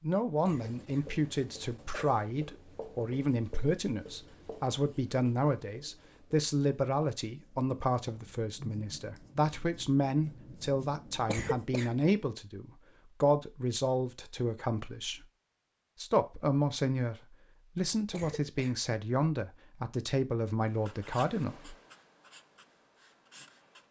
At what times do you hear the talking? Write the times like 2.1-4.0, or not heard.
0.0-15.2, 16.0-21.8.